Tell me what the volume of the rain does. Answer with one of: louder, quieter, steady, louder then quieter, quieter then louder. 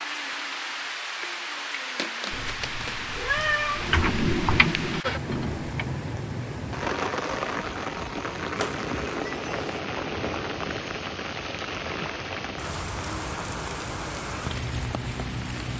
steady.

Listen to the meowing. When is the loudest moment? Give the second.
3 s.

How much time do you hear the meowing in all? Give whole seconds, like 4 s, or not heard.
3 s.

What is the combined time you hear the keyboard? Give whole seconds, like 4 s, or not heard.
2 s.